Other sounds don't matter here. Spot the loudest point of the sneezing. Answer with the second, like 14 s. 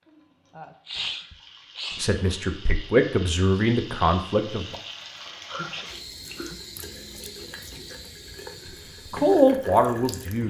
1 s.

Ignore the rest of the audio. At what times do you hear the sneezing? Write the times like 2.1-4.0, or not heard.
0.1-2.1, 5.5-6.6.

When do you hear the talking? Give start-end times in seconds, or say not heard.
1.9-4.8, 9.1-10.4.